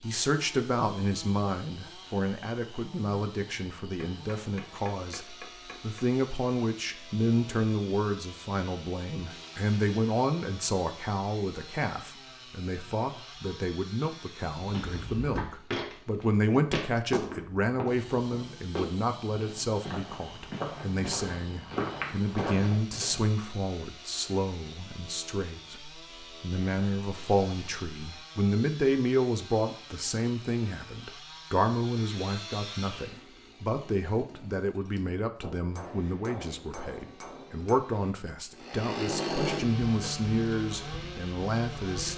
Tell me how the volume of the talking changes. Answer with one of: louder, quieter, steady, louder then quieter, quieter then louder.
steady.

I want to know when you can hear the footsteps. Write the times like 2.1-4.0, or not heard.
14.6-23.4.